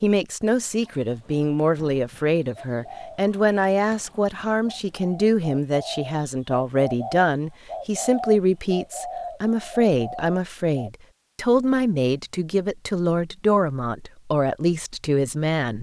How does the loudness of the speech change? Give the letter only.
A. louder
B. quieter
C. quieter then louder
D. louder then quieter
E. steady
E.